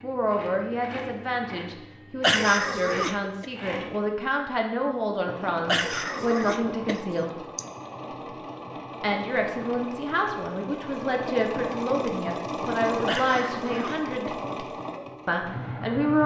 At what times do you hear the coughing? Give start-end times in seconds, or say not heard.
2.2-3.5, 5.7-7.7, 13.1-14.3.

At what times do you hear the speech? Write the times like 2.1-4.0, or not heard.
0.0-7.3, 9.0-14.3, 15.2-16.2.